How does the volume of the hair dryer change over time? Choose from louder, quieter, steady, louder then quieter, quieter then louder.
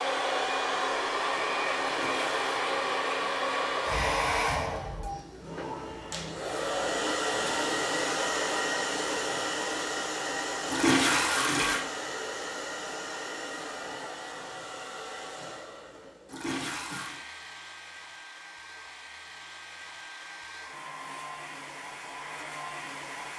quieter.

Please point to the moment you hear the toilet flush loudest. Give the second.
11 s.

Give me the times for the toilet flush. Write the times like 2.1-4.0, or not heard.
1.8-2.4, 10.7-11.8, 16.2-17.2.